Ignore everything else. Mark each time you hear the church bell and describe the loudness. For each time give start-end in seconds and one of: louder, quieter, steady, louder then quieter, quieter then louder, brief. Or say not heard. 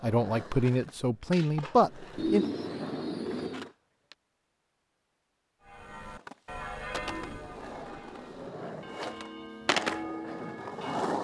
5.6-11.1 quieter then louder.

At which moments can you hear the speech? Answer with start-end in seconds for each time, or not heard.
0.0-2.5.